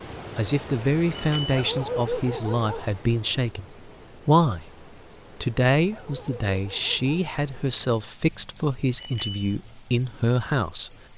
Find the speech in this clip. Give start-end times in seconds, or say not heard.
0.3-4.7, 5.4-10.9.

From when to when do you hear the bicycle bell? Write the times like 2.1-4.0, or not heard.
1.1-1.6, 8.9-9.5.